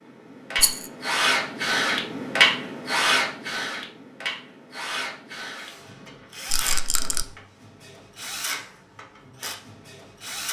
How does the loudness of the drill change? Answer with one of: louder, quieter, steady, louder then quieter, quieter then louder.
quieter.